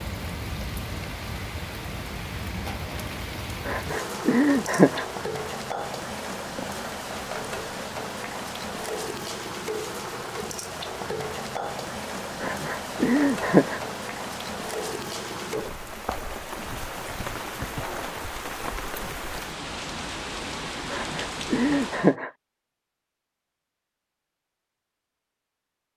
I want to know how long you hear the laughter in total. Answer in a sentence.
You can hear the laughter for 4 seconds altogether.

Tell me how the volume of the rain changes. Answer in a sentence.
The loudness of the rain stays about the same.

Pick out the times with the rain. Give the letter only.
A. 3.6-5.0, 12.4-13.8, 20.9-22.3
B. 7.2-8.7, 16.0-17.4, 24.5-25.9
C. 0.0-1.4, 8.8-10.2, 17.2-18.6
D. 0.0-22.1
D.